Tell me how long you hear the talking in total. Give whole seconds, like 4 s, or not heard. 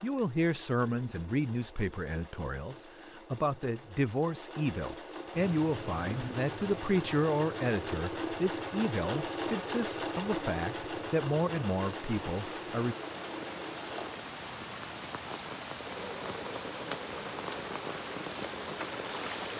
13 s.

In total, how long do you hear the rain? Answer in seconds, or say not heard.
14 s.